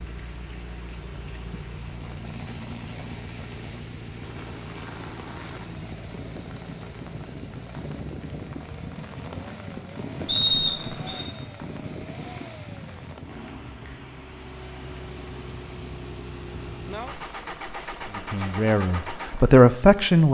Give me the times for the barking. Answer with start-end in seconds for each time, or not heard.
not heard.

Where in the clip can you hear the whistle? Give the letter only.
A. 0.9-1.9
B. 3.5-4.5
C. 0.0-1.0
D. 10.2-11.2
D.